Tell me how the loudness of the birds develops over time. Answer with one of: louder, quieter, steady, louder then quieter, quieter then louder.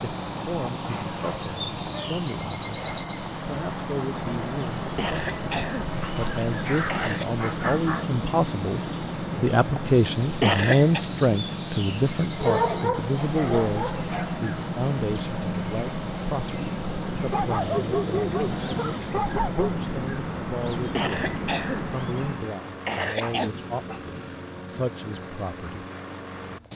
steady.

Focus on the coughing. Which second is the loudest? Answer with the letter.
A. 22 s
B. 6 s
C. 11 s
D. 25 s
C.